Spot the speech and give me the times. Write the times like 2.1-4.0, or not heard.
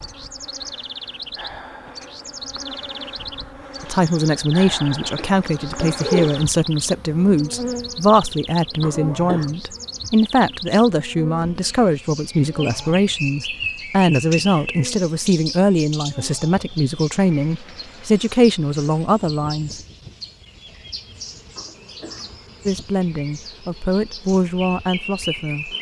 3.8-19.8, 22.6-25.7.